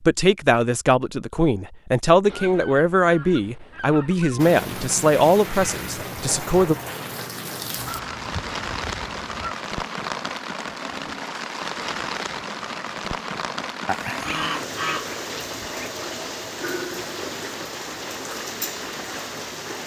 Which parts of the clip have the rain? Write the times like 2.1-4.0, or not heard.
4.3-19.8.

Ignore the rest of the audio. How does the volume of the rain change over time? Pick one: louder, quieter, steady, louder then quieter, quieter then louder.
steady.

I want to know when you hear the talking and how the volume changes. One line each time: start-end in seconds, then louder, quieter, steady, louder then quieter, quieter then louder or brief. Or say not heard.
0.0-6.8 steady.